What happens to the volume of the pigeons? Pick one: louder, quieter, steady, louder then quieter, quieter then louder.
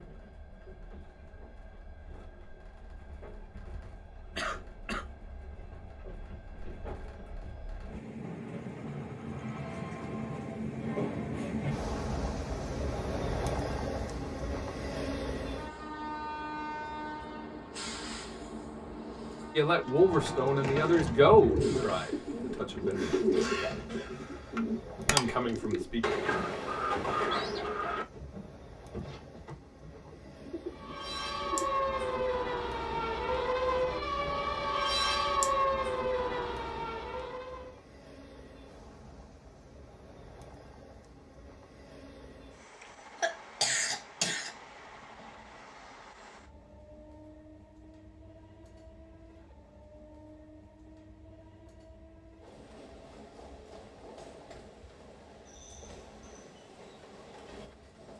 quieter.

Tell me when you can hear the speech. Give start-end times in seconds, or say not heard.
19.6-23.1, 25.1-26.1.